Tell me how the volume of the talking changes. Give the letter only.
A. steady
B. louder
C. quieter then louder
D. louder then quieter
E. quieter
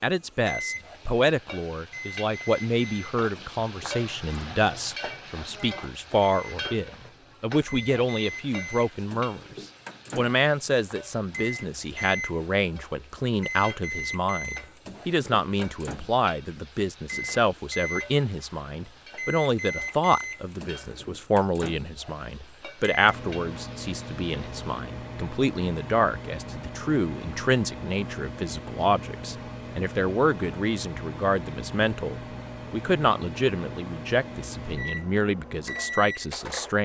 A.